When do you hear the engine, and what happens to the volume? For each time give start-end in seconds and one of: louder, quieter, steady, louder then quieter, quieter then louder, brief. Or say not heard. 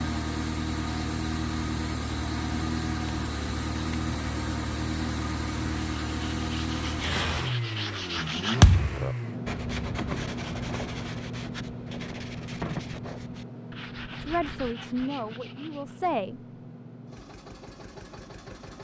0.0-18.8 quieter.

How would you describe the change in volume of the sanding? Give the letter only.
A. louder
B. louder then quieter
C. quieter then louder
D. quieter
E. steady
D.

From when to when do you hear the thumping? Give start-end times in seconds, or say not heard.
8.6-9.0.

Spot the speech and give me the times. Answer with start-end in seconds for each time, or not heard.
14.2-16.4.